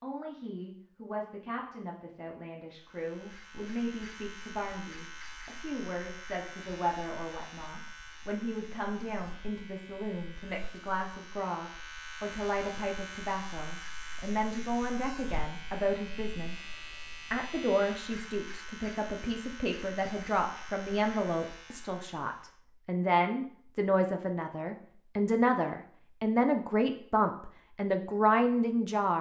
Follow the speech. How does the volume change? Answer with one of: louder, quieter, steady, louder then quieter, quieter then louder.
louder.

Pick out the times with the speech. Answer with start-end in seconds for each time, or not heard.
0.0-16.7, 17.3-29.1.